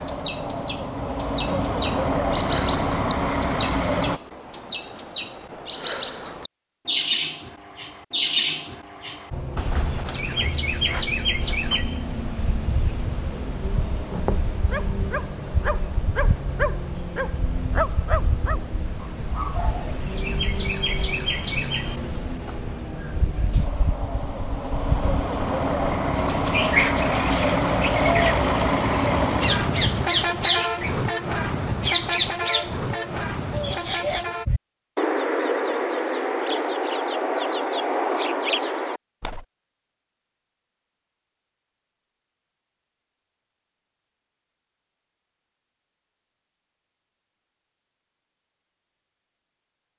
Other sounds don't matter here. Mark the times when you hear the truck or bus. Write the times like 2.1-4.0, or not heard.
0.0-4.2, 9.3-34.5.